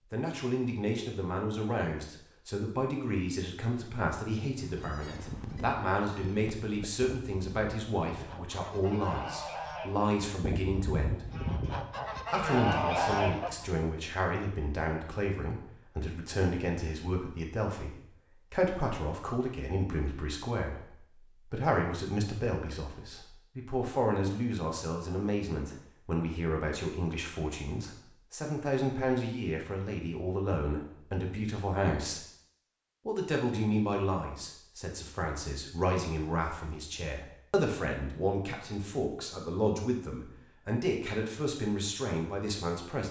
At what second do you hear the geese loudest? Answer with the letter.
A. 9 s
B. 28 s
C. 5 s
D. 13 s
D.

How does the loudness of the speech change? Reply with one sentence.
The volume of the speech stays about the same.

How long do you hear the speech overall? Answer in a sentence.
You can hear the speech for 41 seconds altogether.